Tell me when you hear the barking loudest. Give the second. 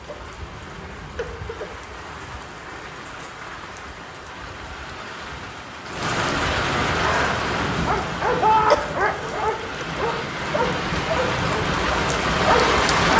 9 s.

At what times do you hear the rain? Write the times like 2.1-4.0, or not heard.
0.0-13.1.